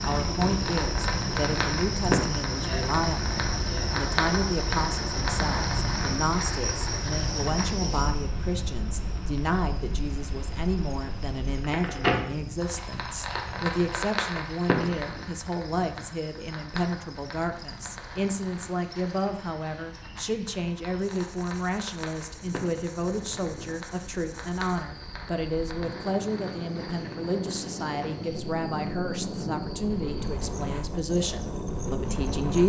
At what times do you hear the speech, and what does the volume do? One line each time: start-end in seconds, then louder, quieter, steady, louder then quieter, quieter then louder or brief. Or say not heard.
0.0-32.6 steady.